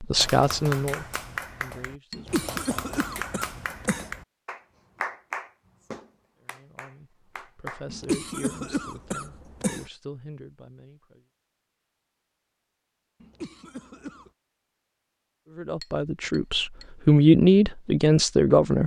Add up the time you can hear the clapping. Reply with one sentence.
The clapping can be heard for 8 seconds in total.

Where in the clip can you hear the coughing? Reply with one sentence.
The coughing can be heard from 2.1 to 4.1 s, from 7.8 to 9.9 s and from 13.2 to 14.3 s.